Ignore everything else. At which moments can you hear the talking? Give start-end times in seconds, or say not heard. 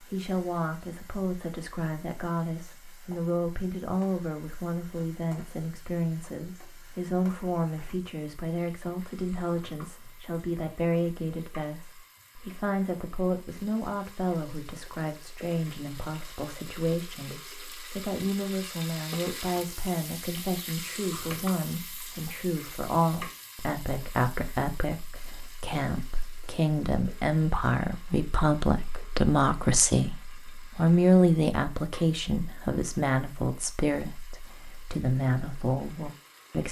0.0-36.6.